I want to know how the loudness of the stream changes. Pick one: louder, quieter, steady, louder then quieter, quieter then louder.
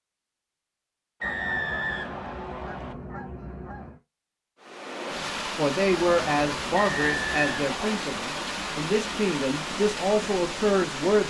steady.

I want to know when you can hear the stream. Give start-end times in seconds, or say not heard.
4.6-11.2.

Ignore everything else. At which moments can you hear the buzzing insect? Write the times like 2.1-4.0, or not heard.
not heard.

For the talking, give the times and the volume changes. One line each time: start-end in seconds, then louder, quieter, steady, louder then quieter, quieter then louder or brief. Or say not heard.
5.5-11.2 quieter then louder.